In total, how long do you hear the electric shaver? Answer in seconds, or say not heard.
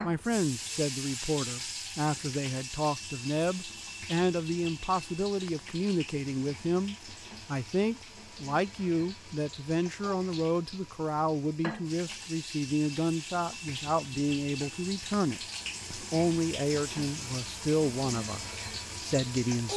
not heard.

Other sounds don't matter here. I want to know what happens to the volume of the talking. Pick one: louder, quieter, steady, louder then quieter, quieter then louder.
steady.